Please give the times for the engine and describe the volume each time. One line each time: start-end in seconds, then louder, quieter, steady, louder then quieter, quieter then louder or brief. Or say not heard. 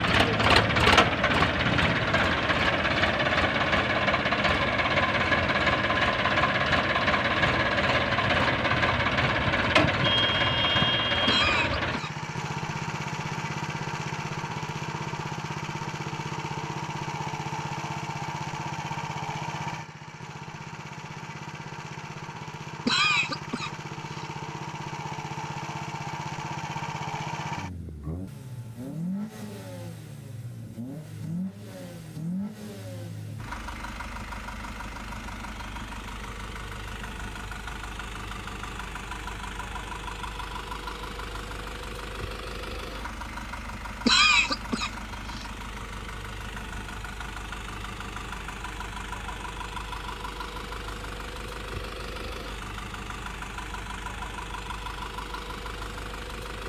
0.0-56.6 quieter.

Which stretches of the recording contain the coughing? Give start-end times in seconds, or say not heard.
11.2-12.1, 22.9-24.2, 44.0-45.5.